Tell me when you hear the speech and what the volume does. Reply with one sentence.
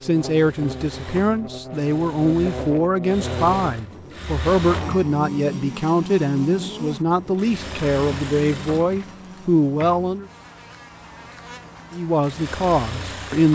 You can hear the speech from 0.0 to 10.2 s, at a steady volume; and briefly from 11.9 to 13.5 s.